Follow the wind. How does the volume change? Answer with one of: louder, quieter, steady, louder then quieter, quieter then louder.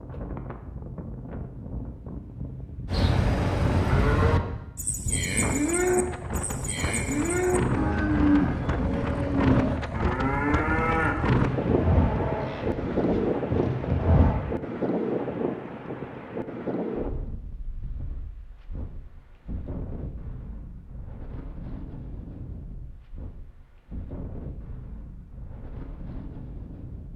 louder then quieter.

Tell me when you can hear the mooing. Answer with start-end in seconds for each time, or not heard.
2.9-14.4.